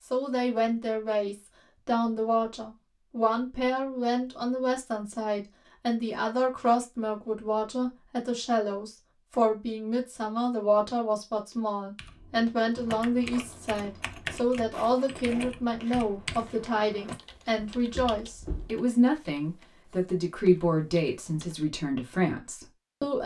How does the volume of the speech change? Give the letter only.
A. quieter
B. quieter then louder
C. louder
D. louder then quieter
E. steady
E.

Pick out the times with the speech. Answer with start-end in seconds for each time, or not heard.
0.0-23.2.